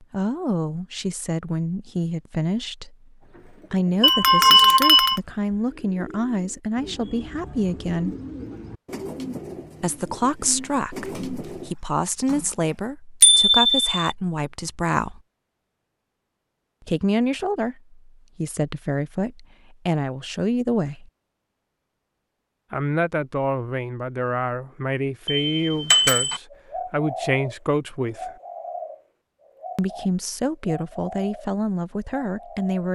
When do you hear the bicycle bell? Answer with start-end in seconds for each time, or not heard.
4.0-5.2, 13.2-13.9, 25.2-26.4.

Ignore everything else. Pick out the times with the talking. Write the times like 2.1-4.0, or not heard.
0.0-8.2, 9.8-15.2, 16.9-21.1, 22.7-28.3, 29.8-32.9.